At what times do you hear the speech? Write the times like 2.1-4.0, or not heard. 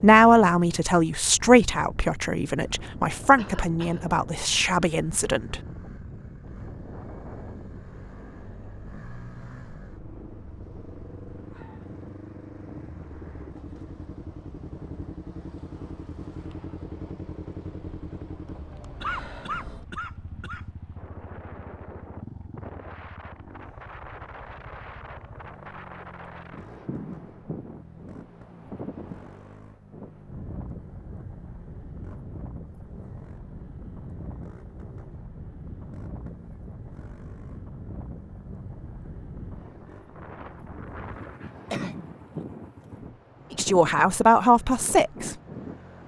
0.0-5.6, 43.5-45.4.